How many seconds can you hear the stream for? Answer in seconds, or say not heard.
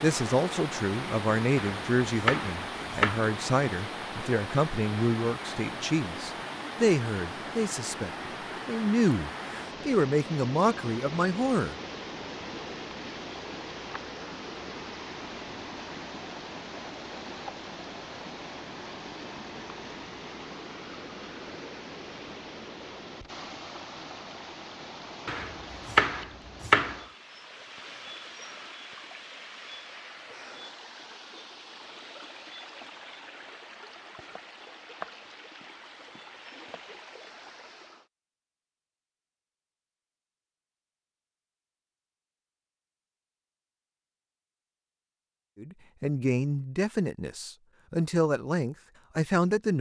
38 s.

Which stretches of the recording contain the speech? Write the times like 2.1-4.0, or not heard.
0.0-11.8, 45.5-49.7.